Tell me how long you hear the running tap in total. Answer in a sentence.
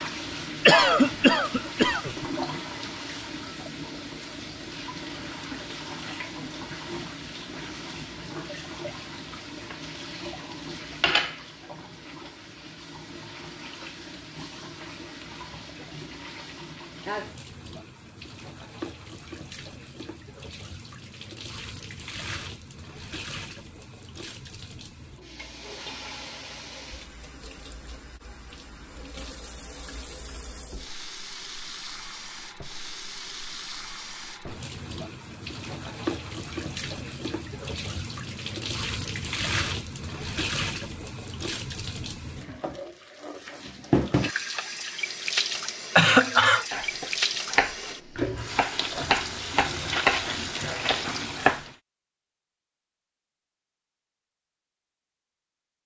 The running tap can be heard for 52 seconds in total.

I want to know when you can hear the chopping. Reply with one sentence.
You can hear the chopping from 46.7 to 48.0 s and from 48.5 to 51.6 s.